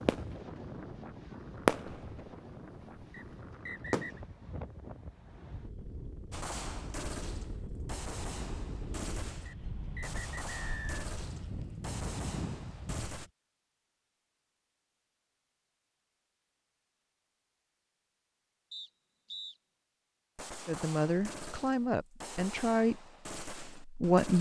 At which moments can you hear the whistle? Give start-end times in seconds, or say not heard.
3.1-4.2, 9.4-11.1, 18.7-19.6.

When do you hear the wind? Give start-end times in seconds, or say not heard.
0.0-13.3.